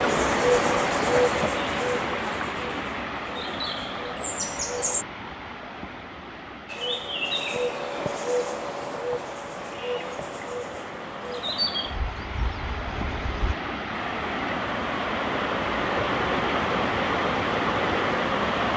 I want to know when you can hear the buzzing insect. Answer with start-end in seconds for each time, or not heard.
0.0-5.0, 6.7-13.6.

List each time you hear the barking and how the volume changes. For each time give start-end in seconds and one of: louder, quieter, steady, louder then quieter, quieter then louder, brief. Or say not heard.
not heard.